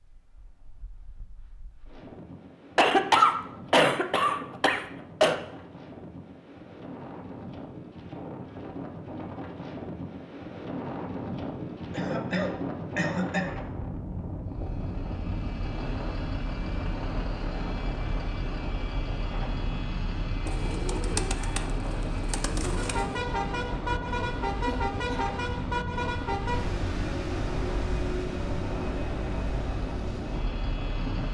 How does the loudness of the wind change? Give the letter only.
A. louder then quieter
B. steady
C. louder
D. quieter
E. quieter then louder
C.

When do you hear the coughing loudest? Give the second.
3 s.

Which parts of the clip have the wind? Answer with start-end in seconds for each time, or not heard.
0.0-31.2.